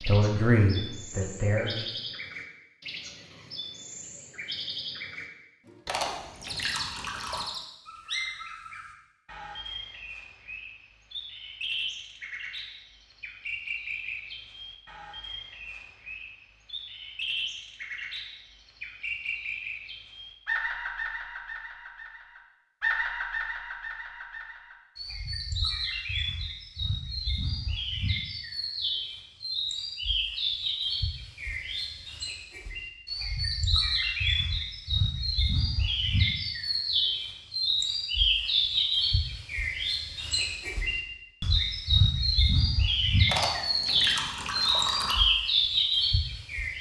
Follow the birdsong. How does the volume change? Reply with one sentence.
The volume of the birdsong goes up.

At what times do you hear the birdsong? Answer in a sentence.
You can hear the birdsong from 0.0 to 46.7 s.